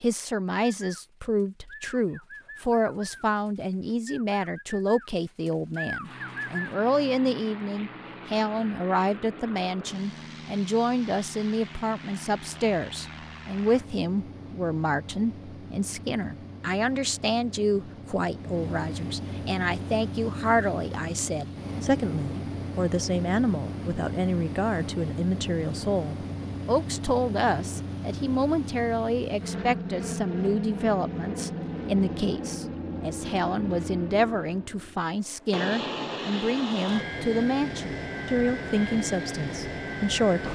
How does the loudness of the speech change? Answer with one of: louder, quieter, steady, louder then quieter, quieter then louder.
steady.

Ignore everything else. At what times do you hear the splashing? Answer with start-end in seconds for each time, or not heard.
not heard.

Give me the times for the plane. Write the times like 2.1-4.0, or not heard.
6.0-40.5.